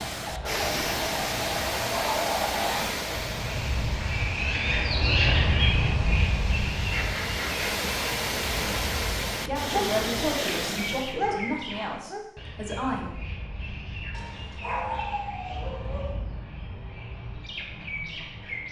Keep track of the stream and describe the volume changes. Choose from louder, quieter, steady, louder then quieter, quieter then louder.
quieter then louder.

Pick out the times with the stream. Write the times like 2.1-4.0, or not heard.
0.0-11.2.